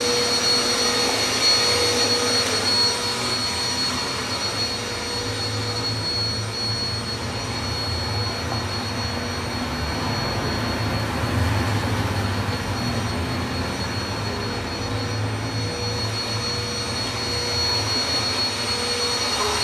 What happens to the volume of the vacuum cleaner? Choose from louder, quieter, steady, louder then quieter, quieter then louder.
quieter then louder.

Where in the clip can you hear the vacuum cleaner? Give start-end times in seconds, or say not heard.
0.0-19.5.